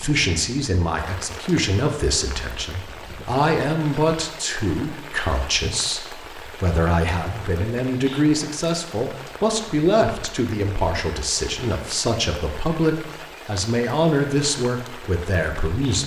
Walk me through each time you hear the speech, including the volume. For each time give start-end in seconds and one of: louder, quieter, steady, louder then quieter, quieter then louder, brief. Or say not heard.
0.0-16.0 steady.